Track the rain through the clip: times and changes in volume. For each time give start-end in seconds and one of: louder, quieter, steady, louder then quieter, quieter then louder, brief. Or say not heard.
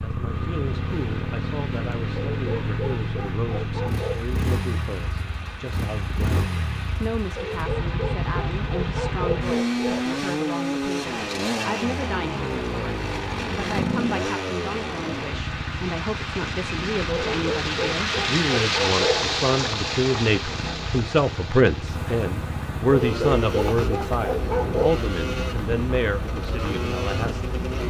0.0-27.8 louder then quieter.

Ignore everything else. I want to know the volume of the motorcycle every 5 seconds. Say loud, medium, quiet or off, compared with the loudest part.
loud, loud, loud, medium, medium, loud.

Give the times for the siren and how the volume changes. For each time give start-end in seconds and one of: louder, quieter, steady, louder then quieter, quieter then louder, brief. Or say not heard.
not heard.